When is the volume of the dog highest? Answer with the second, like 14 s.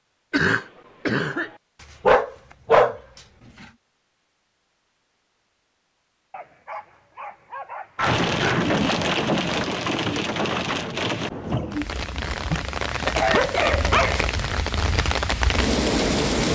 3 s.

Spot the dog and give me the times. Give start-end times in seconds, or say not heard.
2.0-3.2, 6.3-8.2, 12.5-14.1.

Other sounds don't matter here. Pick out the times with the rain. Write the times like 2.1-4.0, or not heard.
8.0-16.5.